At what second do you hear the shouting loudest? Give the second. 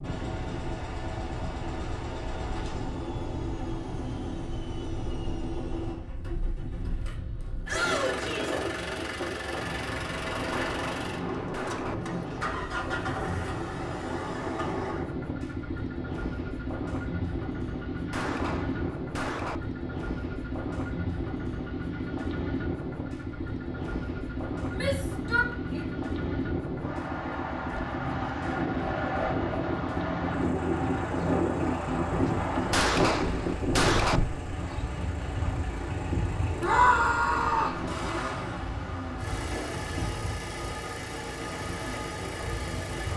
37 s.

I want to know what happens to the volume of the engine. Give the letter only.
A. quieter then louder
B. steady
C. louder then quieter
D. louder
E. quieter
B.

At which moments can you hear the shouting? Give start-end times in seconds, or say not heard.
7.7-8.6, 24.8-25.9, 36.6-37.8.